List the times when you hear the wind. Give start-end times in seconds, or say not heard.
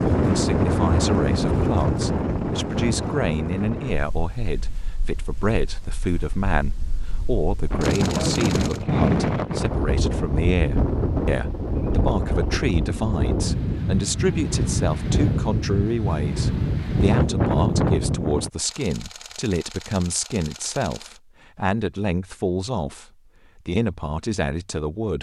0.0-18.5.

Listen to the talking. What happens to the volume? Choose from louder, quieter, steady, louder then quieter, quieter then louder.
steady.